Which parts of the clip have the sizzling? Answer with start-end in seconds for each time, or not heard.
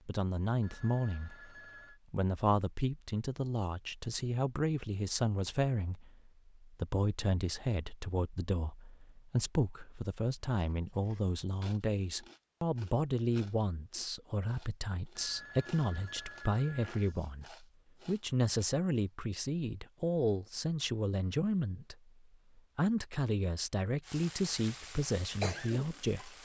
24.0-26.3.